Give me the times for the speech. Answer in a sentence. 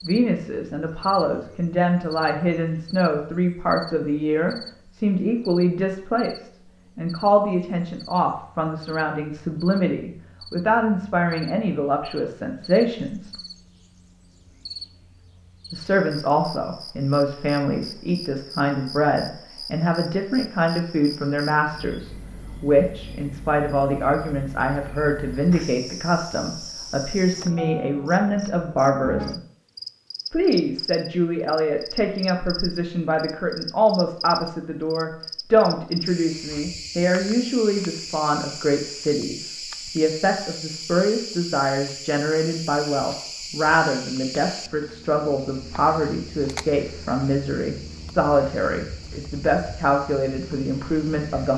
The speech can be heard from 0.1 to 13.3 s, from 15.7 to 29.4 s and from 30.3 to 51.5 s.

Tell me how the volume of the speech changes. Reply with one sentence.
The volume of the speech stays about the same.